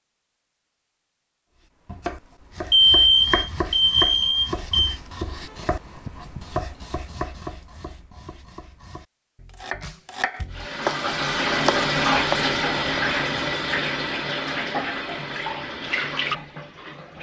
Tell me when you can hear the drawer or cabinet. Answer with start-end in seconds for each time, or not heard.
not heard.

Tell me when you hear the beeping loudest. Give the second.
3 s.